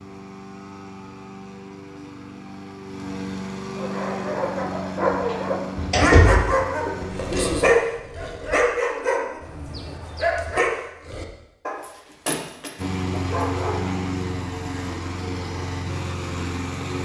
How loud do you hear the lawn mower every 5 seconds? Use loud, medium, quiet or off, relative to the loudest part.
medium, medium, loud, loud.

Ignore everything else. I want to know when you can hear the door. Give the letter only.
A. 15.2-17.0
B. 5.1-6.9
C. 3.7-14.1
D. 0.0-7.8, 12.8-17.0
B.